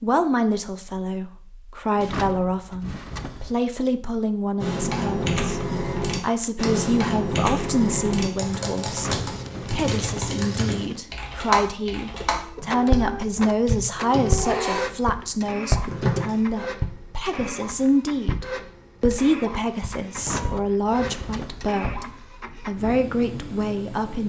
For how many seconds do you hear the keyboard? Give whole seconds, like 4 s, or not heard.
11 s.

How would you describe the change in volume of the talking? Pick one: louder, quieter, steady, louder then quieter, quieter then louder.
steady.